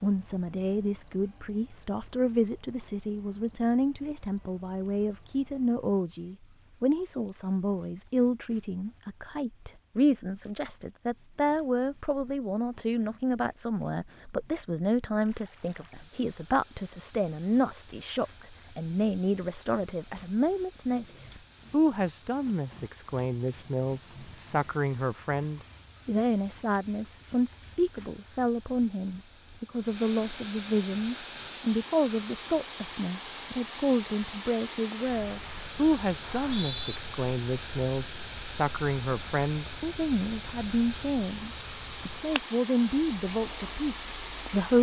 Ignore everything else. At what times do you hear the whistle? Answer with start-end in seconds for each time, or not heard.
36.2-37.0.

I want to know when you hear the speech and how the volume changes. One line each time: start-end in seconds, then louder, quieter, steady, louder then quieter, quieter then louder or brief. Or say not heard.
0.0-44.7 steady.